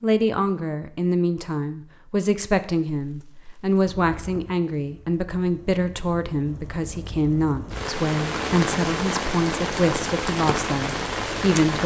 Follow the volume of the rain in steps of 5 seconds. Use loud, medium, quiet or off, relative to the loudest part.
quiet, loud, loud.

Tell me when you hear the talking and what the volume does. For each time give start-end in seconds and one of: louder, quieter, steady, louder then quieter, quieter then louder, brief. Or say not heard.
0.0-11.8 steady.